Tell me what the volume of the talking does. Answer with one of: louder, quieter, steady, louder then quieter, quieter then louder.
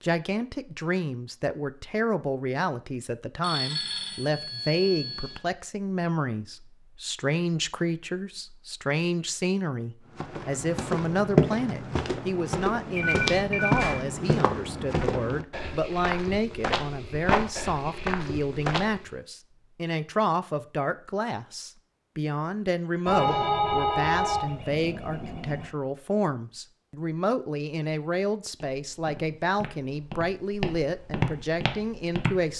steady.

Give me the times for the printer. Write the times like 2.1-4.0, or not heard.
not heard.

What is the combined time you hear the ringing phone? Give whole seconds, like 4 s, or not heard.
6 s.